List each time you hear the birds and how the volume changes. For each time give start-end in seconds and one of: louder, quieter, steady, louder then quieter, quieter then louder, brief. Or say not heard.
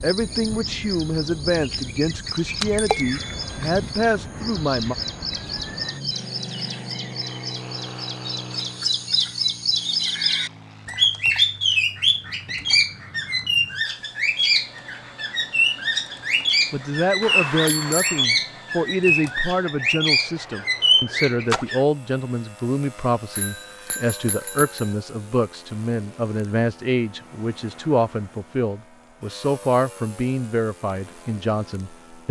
0.0-21.8 louder.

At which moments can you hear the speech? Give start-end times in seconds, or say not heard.
0.0-5.0, 16.7-32.2.